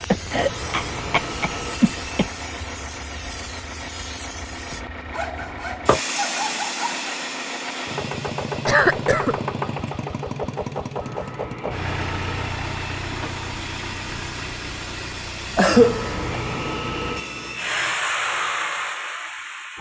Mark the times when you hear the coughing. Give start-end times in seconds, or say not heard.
0.1-2.2, 8.7-9.3, 15.6-16.2.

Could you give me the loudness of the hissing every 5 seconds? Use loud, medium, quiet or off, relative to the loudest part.
medium, loud, medium, loud.